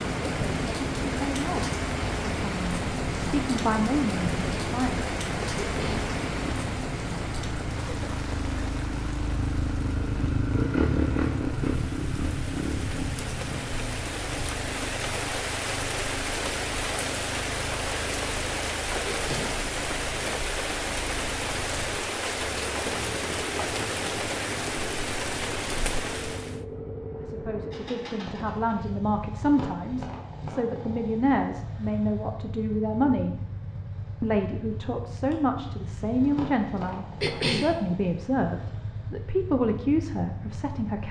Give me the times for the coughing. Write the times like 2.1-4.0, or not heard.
5.5-6.1, 19.1-19.6, 37.2-37.8.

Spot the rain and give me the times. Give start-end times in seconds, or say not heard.
0.0-26.6.